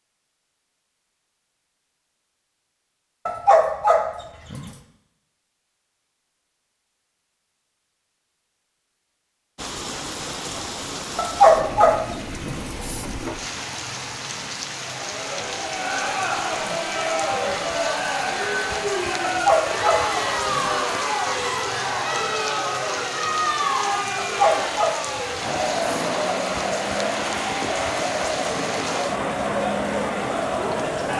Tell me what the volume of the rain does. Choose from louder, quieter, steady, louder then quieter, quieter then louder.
steady.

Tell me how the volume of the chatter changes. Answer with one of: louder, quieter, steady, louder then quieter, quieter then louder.
steady.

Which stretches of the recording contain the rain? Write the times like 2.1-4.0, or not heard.
9.6-31.1.